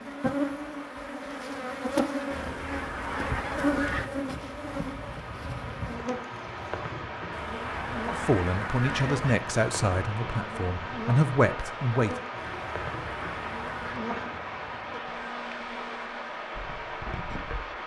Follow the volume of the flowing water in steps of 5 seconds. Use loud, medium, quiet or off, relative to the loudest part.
medium, loud, loud, loud.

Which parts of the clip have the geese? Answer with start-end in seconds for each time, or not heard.
2.3-4.1, 7.3-9.3, 12.3-14.1.